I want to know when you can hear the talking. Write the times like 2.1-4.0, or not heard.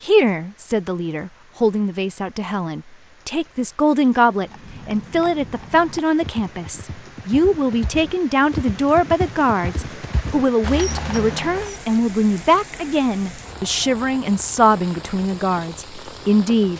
0.0-16.7.